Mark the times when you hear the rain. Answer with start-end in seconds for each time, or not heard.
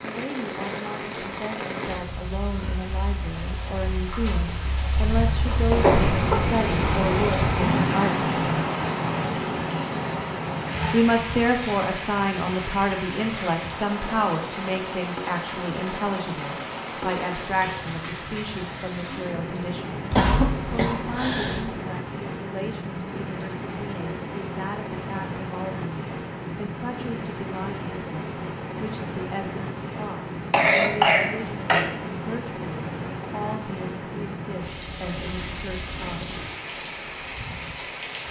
0.0-38.2.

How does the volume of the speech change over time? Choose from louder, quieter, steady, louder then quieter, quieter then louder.
louder then quieter.